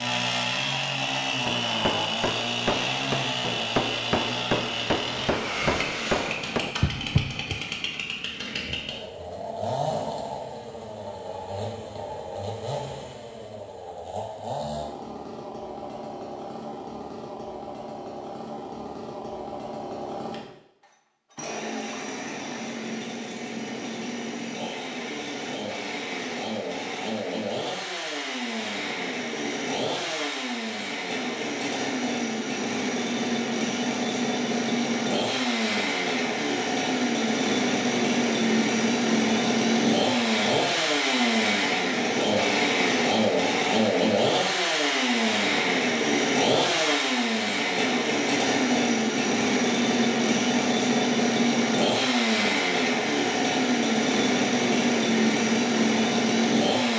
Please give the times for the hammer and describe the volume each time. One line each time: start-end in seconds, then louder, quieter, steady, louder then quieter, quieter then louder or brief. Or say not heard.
1.4-7.6 steady.